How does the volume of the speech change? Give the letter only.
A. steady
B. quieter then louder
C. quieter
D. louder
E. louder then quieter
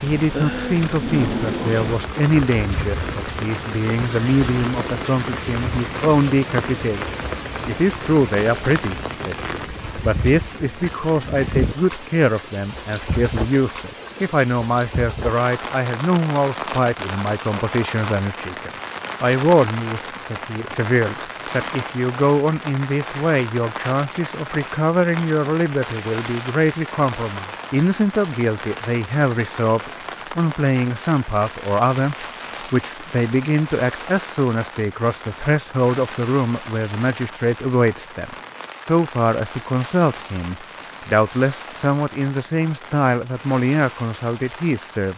A.